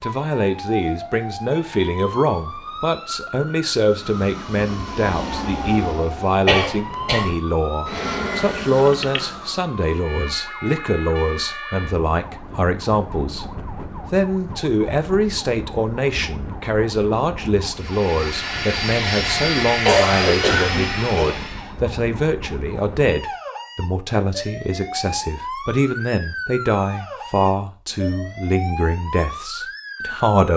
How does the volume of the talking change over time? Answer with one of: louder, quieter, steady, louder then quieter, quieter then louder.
steady.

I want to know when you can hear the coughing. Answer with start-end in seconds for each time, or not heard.
6.5-7.3, 19.8-21.4.